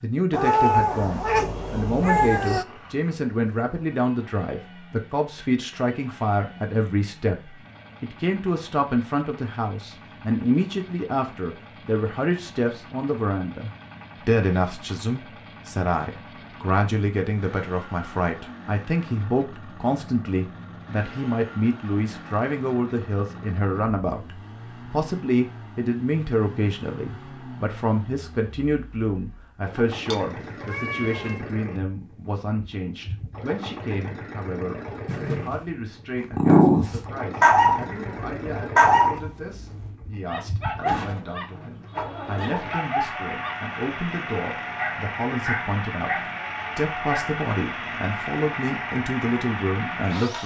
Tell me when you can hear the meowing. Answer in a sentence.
You can hear the meowing from 0.3 to 2.6 s, from 30.1 to 31.4 s and from 35.0 to 35.6 s.